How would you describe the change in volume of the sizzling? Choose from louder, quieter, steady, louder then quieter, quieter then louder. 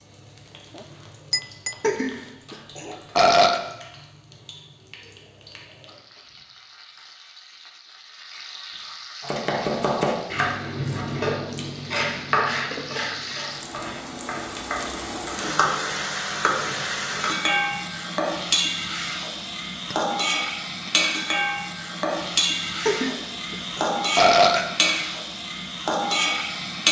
louder.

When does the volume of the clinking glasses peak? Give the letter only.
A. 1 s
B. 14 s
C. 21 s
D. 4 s
A.